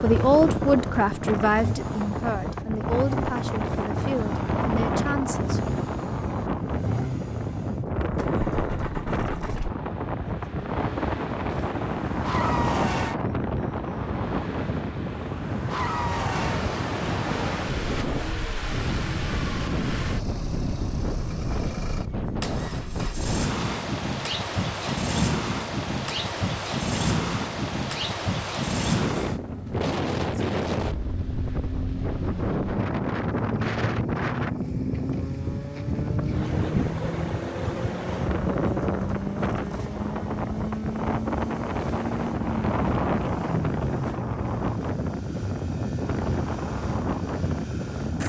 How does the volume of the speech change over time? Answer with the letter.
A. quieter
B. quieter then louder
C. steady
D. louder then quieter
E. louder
A.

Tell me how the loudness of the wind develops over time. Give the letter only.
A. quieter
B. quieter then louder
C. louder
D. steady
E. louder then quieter
D.